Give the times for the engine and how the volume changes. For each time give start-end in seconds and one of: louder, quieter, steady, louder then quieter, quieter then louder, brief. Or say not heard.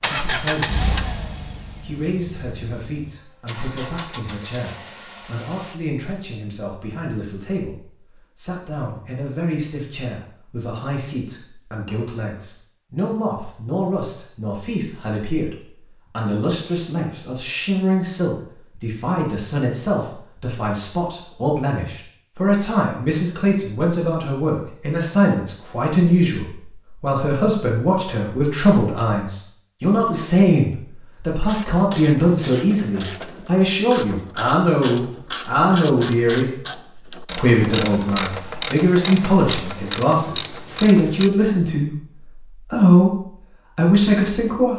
0.0-5.8 quieter then louder.